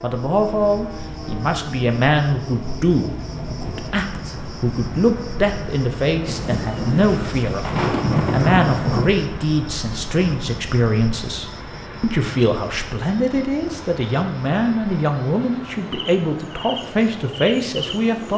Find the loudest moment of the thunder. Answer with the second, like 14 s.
8 s.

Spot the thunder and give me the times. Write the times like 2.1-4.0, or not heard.
6.2-9.2.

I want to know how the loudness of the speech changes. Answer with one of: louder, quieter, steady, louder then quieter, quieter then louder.
steady.